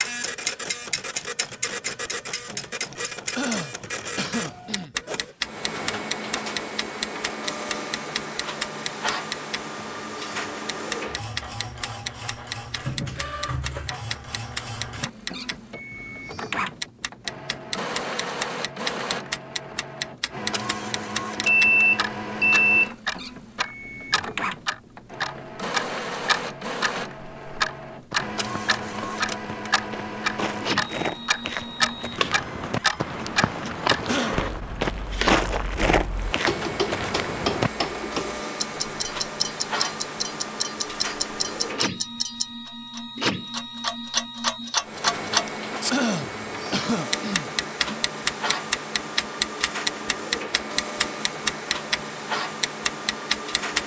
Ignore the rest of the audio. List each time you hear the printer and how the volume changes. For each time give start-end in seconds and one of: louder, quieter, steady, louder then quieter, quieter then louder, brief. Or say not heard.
0.0-53.8 steady.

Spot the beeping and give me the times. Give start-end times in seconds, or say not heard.
21.4-22.9.